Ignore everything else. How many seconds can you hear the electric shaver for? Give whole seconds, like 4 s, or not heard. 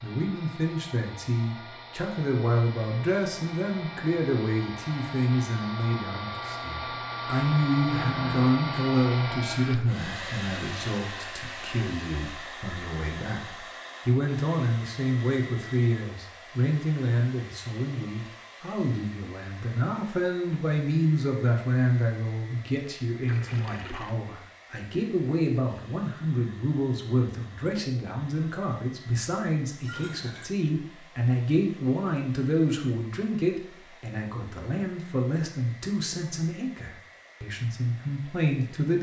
not heard.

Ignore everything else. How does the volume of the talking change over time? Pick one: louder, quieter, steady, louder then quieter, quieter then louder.
steady.